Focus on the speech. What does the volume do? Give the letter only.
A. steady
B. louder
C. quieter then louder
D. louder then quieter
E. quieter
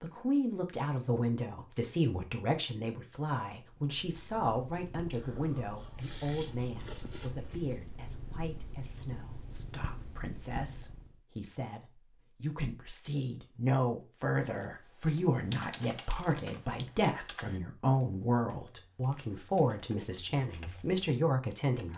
C.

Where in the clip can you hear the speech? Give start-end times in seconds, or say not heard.
0.0-21.9.